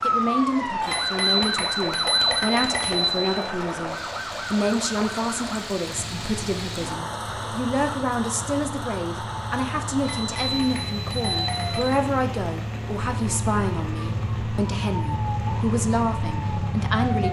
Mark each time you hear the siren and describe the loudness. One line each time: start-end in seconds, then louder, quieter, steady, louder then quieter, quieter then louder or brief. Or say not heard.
0.0-17.2 quieter then louder.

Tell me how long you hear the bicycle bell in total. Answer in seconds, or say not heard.
4 s.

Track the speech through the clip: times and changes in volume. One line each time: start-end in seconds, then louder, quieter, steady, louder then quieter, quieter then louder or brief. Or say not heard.
0.0-17.2 steady.